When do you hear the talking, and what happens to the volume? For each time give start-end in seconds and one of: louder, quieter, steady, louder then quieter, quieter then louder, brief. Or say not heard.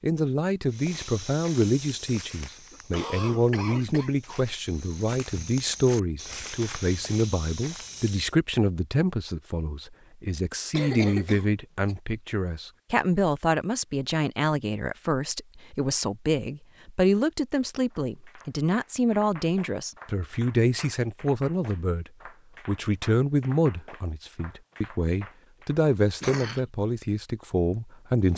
0.0-28.3 steady.